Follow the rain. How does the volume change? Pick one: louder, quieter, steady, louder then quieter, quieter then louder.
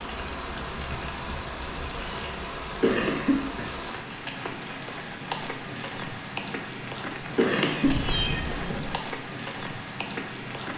steady.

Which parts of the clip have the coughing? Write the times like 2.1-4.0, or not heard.
2.8-3.8, 7.1-8.2.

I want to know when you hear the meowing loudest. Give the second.
8 s.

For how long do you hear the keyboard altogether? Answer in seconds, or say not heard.
not heard.